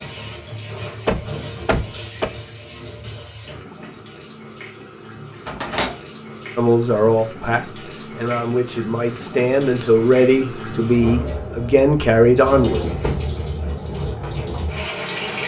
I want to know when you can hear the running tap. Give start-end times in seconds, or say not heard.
0.0-15.4.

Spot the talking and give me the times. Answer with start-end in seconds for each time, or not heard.
6.5-12.8.